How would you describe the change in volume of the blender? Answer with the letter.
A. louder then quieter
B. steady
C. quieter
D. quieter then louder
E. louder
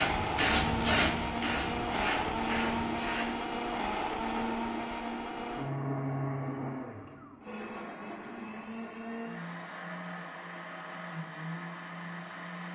C.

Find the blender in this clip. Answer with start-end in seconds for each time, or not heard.
0.0-12.7.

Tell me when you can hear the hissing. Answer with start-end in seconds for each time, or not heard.
0.0-3.4.